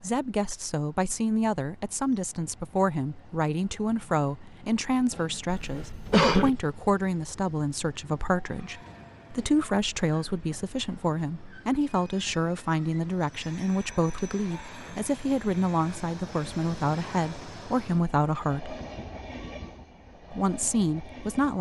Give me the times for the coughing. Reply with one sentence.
You can hear the coughing from 5.5 to 6.5 s.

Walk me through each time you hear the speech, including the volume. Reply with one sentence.
The speech can be heard from 0.0 to 18.8 s, at a steady volume; and briefly from 20.3 to 21.5 s.